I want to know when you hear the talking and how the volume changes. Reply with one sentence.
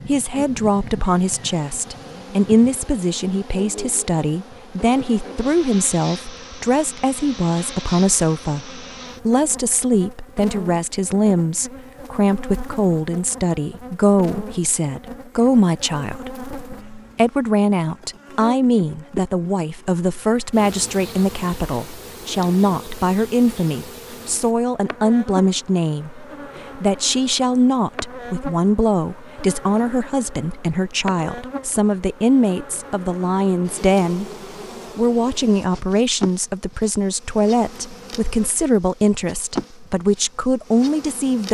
The talking can be heard from 0.1 to 34.3 s, at a steady volume; and from 35.0 to 41.4 s, at a steady volume.